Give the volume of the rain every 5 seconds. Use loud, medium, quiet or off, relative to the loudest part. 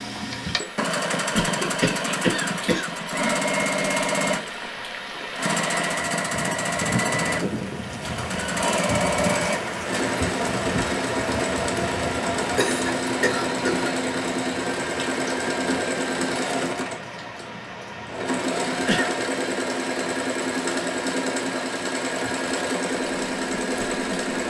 medium, loud, loud, medium, medium.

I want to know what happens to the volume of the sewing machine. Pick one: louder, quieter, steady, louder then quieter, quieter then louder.
steady.